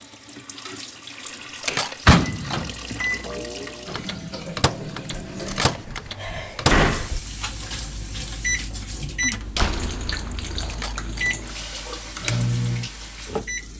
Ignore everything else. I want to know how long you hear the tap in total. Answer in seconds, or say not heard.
14 s.